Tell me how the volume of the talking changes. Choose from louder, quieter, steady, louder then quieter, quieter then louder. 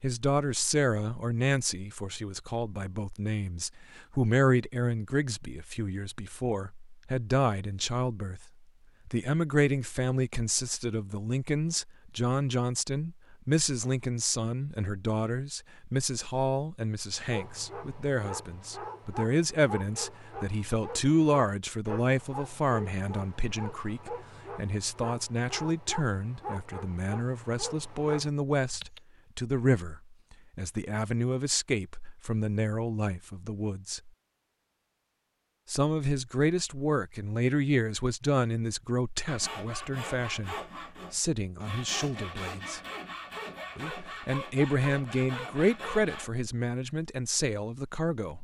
steady.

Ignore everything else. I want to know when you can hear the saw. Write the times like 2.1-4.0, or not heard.
39.2-46.3.